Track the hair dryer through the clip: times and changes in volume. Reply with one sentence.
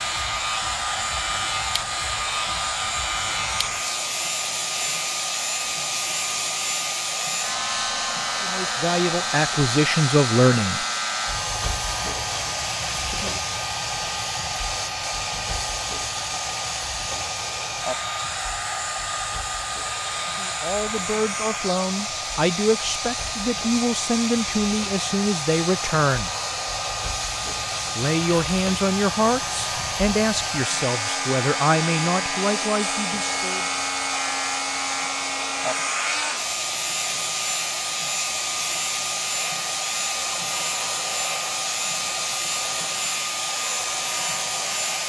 The hair dryer can be heard from 0.0 to 45.0 s, at a steady volume.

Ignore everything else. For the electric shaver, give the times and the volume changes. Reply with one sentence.
The electric shaver can be heard from 0.0 to 45.0 s, getting quieter then louder.